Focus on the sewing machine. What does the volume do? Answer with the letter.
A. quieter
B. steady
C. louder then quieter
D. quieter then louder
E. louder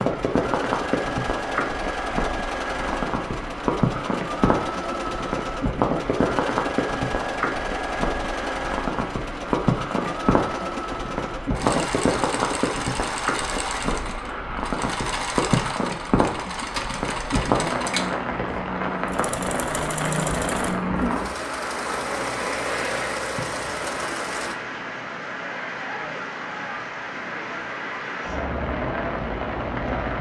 B.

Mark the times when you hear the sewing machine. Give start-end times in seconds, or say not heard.
0.0-24.6.